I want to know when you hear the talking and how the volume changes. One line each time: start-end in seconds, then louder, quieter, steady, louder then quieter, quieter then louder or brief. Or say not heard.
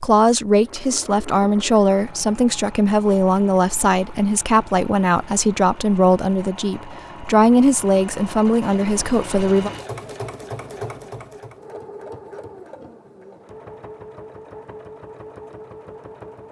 0.0-9.7 steady.